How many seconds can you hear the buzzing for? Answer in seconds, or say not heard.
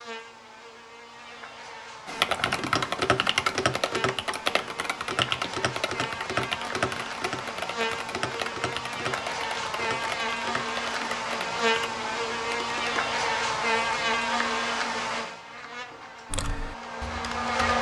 18 s.